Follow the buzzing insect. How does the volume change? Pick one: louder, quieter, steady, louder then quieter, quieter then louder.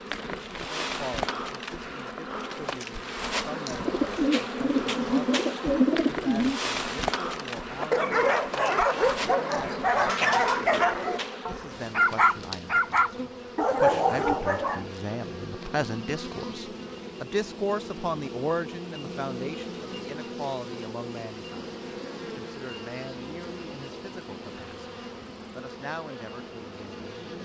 quieter.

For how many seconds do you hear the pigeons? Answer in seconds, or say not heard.
3 s.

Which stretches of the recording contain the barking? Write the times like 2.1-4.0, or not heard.
7.8-14.8.